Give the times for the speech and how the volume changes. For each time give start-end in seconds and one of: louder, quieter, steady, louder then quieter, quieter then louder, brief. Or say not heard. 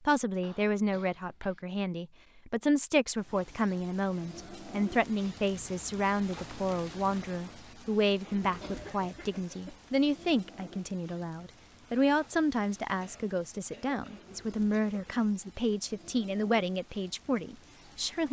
0.0-18.2 steady.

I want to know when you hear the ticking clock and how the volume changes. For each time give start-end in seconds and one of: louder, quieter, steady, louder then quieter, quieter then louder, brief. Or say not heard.
not heard.